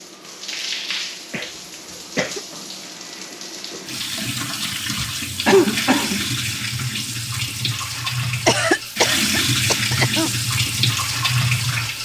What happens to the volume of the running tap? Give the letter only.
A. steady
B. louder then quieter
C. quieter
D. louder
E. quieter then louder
D.